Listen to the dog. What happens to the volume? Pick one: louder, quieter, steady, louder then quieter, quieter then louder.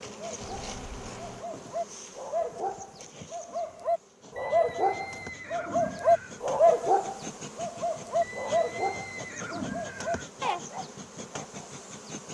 louder then quieter.